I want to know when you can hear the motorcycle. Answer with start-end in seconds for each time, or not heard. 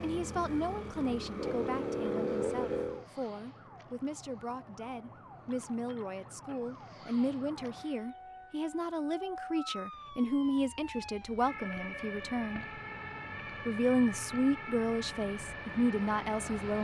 0.0-3.0.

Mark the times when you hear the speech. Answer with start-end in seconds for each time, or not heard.
0.0-12.6, 13.7-16.7.